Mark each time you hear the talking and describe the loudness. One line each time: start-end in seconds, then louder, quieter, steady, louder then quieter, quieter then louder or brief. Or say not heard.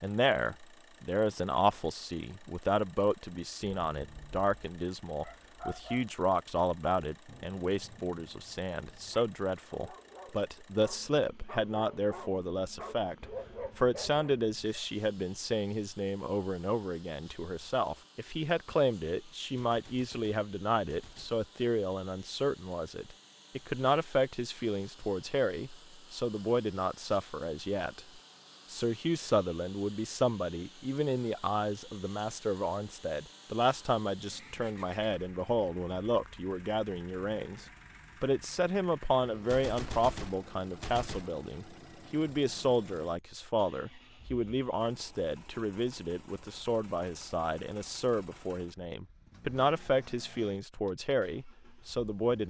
0.0-52.4 steady.